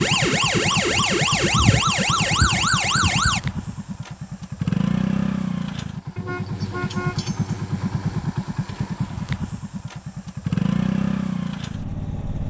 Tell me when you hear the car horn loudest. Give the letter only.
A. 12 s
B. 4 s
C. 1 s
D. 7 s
D.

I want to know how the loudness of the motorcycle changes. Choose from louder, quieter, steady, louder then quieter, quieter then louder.
steady.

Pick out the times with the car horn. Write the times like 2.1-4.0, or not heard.
6.2-8.2.